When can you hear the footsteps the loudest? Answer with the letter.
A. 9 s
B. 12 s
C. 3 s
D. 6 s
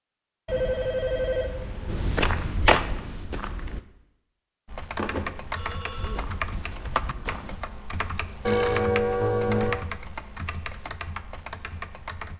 C.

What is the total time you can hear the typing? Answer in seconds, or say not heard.
8 s.